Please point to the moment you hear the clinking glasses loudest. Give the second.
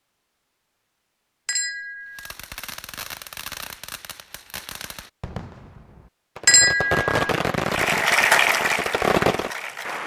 7 s.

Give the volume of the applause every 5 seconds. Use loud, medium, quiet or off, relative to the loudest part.
off, loud.